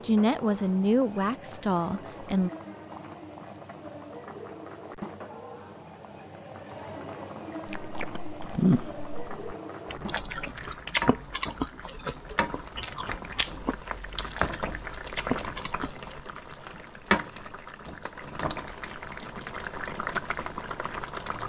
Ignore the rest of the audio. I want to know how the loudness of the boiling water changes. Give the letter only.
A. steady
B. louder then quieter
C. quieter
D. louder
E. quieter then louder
D.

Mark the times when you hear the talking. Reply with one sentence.
The talking can be heard from 0.0 to 2.5 s.